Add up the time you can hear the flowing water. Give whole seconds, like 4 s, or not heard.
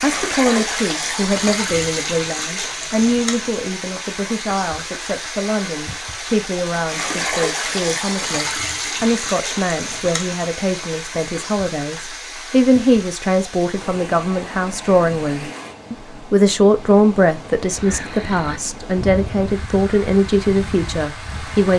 22 s.